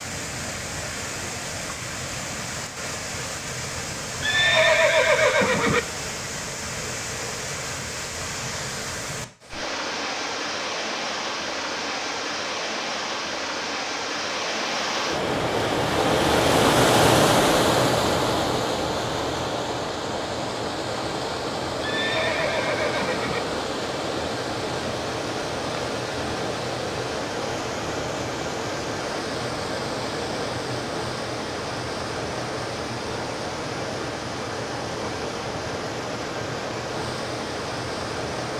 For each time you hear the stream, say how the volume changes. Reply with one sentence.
You can hear the stream from 0.0 to 38.5 s, getting louder then quieter.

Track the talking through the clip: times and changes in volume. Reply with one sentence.
You can't hear the talking here.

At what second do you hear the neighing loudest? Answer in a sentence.
The volume of the neighing peaks at 5 seconds.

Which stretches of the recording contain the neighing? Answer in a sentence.
The neighing can be heard from 4.2 to 5.8 s and from 21.8 to 23.4 s.